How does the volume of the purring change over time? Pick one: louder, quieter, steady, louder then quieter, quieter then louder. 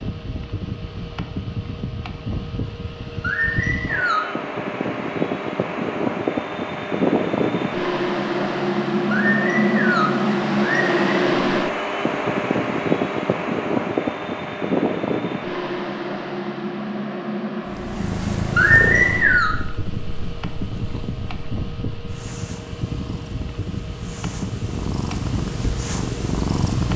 quieter then louder.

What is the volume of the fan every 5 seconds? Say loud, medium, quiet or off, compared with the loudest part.
medium, loud, loud, medium, medium, medium.